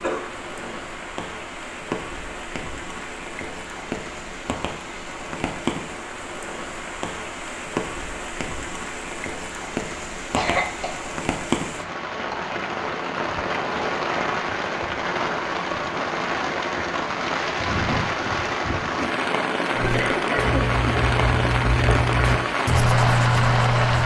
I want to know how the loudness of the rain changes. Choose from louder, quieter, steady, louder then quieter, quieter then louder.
louder.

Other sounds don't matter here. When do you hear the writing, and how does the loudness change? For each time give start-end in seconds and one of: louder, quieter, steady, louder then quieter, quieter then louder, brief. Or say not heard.
19.7-24.0 louder.